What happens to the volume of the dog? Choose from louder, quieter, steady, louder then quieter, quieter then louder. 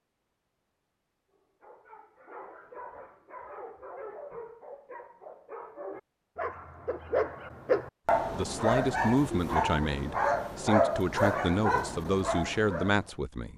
louder.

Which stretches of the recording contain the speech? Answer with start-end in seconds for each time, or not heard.
8.3-13.5.